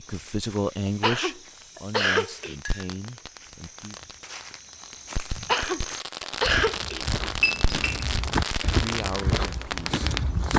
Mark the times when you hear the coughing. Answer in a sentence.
You can hear the coughing from 1.0 to 2.5 s and from 5.5 to 7.0 s.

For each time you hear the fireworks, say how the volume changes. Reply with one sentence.
You can hear the fireworks from 2.6 to 10.5 s, getting louder.